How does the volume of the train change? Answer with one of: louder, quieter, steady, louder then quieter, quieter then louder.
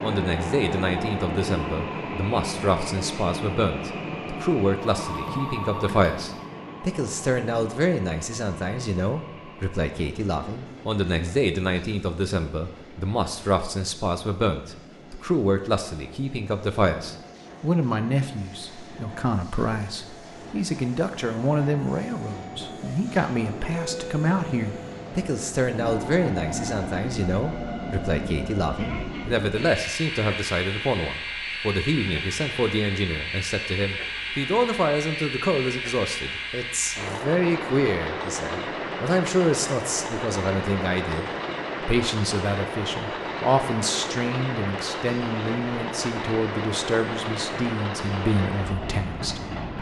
quieter then louder.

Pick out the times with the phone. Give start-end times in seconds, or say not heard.
4.8-6.4.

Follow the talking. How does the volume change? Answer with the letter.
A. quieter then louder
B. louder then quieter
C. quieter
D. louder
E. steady
E.